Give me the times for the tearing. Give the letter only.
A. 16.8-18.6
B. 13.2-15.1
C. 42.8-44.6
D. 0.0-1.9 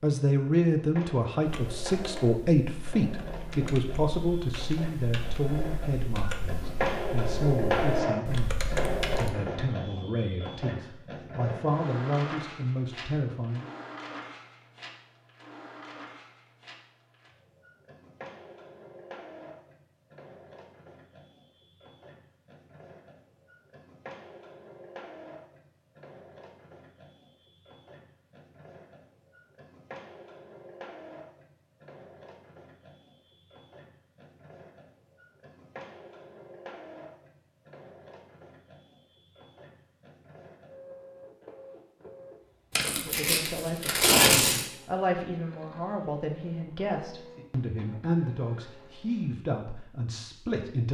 C.